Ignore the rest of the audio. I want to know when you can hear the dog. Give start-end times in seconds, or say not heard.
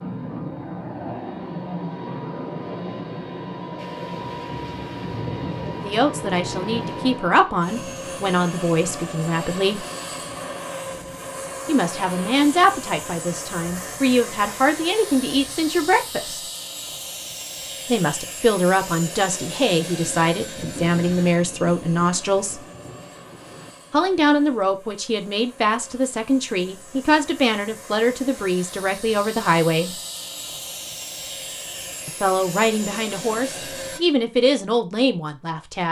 not heard.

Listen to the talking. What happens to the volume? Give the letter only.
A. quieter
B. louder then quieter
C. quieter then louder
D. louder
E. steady
E.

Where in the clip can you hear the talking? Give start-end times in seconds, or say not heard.
5.8-9.8, 11.7-16.4, 17.9-22.6, 23.9-30.0, 32.0-35.8.